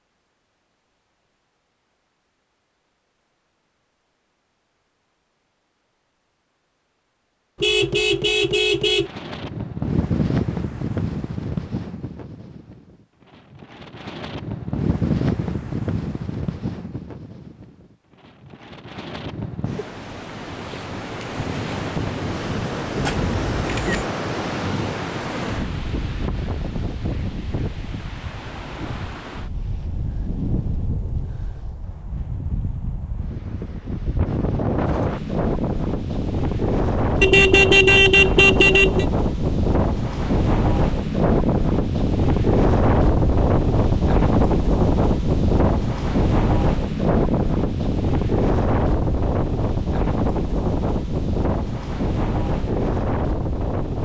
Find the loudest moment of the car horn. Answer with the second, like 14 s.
38 s.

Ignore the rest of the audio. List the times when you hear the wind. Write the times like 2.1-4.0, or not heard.
9.1-53.9.